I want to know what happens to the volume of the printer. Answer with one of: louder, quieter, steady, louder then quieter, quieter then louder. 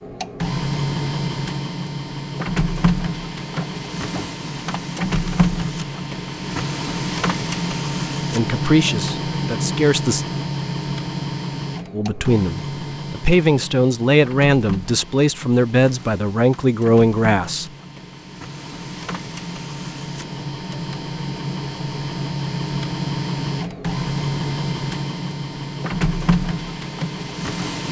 quieter then louder.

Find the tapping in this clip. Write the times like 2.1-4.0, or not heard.
3.5-4.4.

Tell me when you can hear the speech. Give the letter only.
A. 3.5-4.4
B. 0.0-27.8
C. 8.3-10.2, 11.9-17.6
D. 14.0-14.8
C.